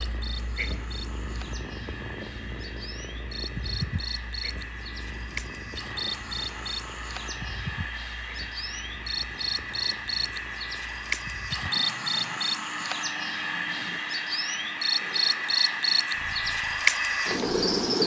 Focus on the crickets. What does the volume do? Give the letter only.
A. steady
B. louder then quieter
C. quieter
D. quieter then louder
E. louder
E.